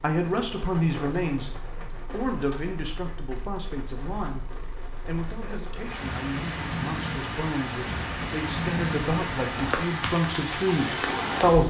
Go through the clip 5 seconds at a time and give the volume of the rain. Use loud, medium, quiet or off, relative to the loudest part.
quiet, loud, loud.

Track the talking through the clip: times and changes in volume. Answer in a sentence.
The talking can be heard from 0.0 to 11.6 s, getting quieter then louder.